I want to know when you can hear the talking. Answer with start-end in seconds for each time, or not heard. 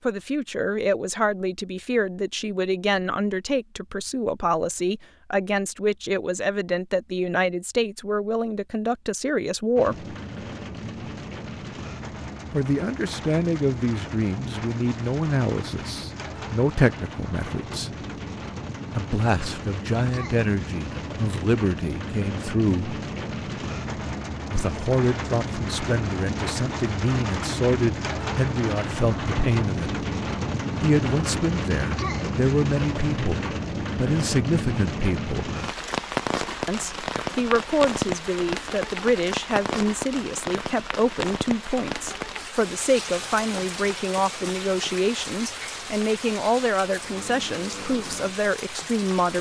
0.1-10.2, 12.5-17.9, 18.9-23.0, 24.5-29.9, 30.8-35.5, 36.6-49.3.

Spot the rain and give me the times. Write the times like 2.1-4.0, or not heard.
9.8-49.3.